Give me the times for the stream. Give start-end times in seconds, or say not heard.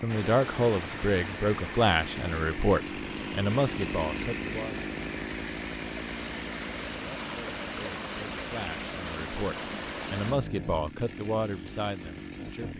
0.1-10.4.